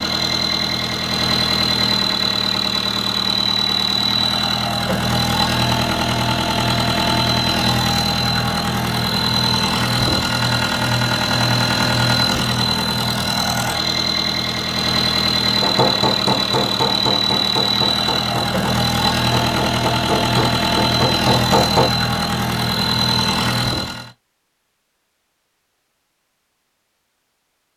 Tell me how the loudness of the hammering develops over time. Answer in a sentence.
The loudness of the hammering goes down, then up.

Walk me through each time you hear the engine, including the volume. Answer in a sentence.
You can hear the engine from 0.0 to 24.1 s, at a steady volume.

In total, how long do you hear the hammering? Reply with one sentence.
The hammering can be heard for 6 seconds in total.